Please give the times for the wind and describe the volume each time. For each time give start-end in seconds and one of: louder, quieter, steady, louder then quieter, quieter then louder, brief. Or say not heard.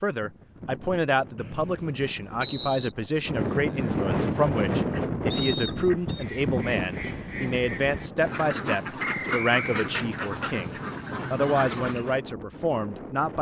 0.1-13.3 louder then quieter.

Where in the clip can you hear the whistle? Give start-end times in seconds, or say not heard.
1.4-3.0, 5.3-6.2, 8.9-9.8.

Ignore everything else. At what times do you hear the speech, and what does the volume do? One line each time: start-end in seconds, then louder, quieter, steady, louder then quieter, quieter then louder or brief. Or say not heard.
0.0-13.3 steady.